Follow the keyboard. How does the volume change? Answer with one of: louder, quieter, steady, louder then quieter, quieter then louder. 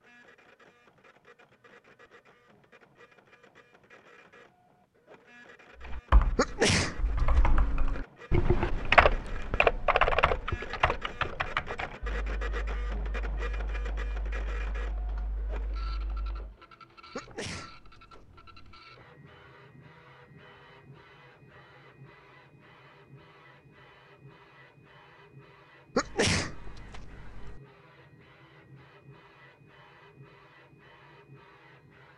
louder then quieter.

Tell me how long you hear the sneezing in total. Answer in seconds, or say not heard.
5 s.